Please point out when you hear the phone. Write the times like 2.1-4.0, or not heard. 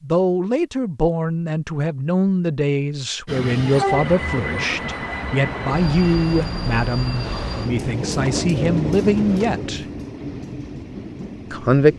not heard.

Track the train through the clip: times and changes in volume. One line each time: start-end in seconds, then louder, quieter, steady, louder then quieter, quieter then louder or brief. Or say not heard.
3.2-11.9 quieter.